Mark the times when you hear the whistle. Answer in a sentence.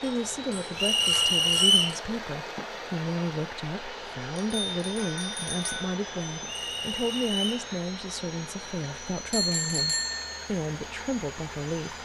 The whistle can be heard from 0.8 to 1.9 s and from 6.5 to 7.5 s.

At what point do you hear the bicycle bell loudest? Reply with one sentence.
The loudest moment of the bicycle bell is at 10 seconds.